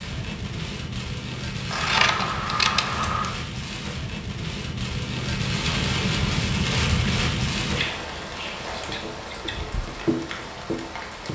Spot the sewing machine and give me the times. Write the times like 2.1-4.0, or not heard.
not heard.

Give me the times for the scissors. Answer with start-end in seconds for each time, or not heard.
1.7-3.4, 7.8-9.7.